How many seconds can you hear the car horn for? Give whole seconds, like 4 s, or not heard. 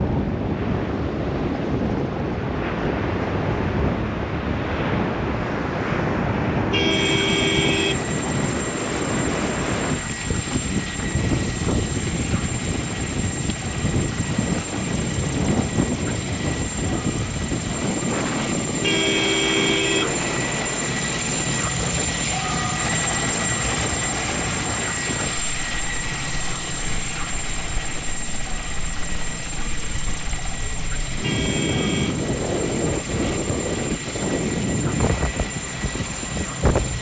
4 s.